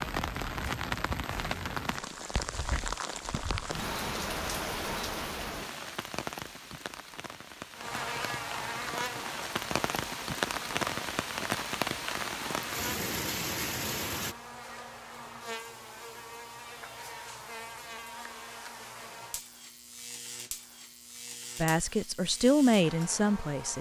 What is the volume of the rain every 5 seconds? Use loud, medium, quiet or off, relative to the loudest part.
loud, medium, loud, off, off.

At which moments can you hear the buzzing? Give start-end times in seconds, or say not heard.
7.8-23.7.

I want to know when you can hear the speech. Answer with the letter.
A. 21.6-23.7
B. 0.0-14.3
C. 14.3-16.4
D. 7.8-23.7
A.